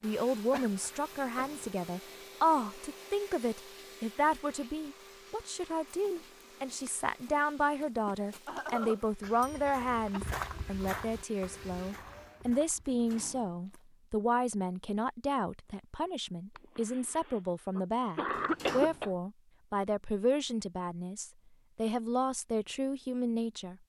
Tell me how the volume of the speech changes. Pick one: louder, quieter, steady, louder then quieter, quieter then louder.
steady.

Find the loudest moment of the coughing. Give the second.
19 s.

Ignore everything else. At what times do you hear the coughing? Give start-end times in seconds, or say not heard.
0.5-1.4, 8.2-10.2, 16.6-19.1.